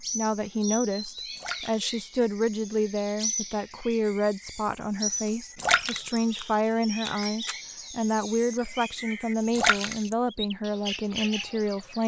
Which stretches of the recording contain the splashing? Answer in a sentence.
The splashing can be heard from 1.4 to 1.9 s, from 5.5 to 6.2 s and from 9.6 to 10.2 s.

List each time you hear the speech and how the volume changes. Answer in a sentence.
The speech can be heard from 0.0 to 12.0 s, at a steady volume.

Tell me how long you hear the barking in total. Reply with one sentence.
The barking can't be heard in this clip.